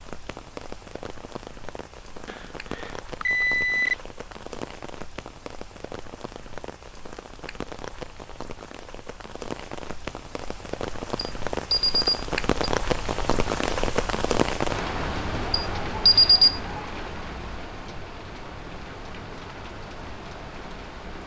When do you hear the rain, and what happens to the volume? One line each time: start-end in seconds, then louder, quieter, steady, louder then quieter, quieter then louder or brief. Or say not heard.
0.0-21.2 louder then quieter.